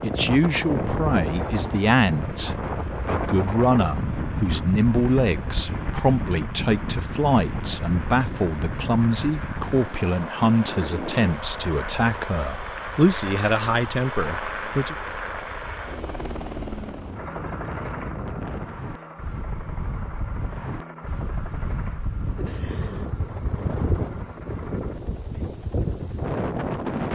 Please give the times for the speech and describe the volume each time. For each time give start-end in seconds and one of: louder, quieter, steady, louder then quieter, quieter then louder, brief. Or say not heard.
0.0-14.9 steady.